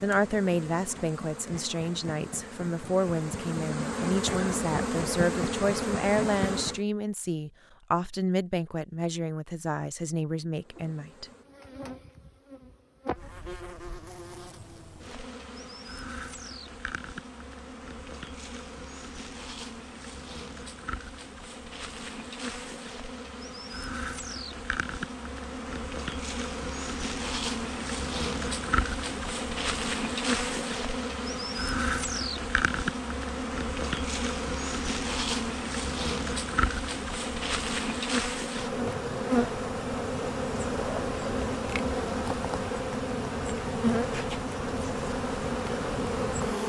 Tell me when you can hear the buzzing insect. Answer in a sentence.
You can hear the buzzing insect from 0.0 to 6.8 s and from 10.6 to 46.6 s.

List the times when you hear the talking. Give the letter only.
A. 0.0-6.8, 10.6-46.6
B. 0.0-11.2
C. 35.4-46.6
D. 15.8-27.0
B.